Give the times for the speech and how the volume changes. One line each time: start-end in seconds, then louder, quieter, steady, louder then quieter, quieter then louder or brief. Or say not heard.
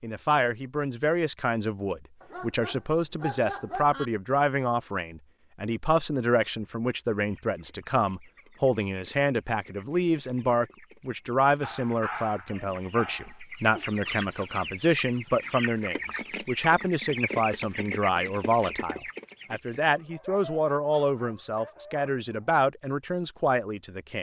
0.0-24.1 steady.